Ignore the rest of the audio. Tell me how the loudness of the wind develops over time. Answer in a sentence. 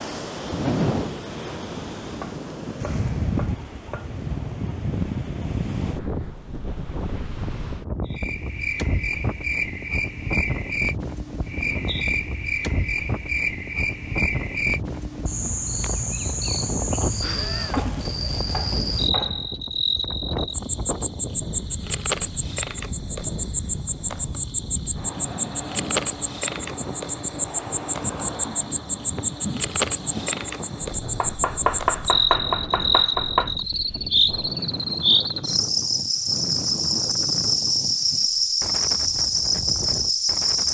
The loudness of the wind goes down.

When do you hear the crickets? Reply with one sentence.
You can hear the crickets from 8.1 to 40.6 s.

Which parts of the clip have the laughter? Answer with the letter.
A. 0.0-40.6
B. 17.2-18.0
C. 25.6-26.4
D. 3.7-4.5
B.